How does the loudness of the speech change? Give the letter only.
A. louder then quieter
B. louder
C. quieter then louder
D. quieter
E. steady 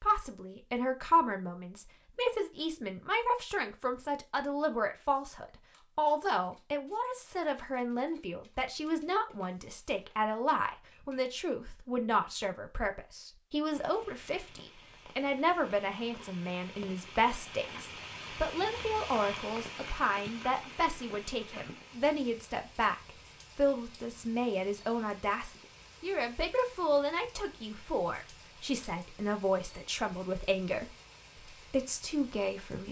E.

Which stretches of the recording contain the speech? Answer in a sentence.
The speech can be heard from 0.0 to 32.8 s.